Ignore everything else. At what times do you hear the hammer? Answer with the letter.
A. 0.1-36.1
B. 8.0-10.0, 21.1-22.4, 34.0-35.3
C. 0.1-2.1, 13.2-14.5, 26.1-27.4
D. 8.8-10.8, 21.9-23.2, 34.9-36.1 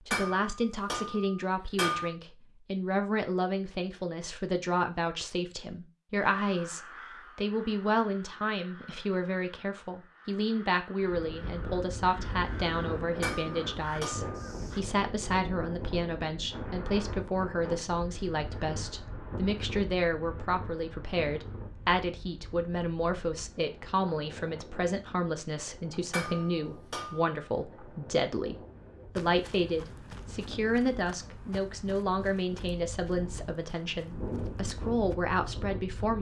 C.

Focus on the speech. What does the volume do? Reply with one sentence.
The loudness of the speech stays about the same.